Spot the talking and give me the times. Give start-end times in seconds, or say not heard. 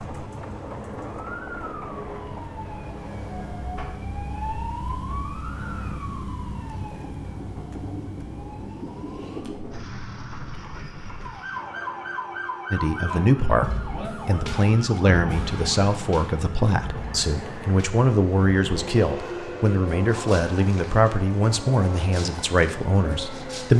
12.7-23.7.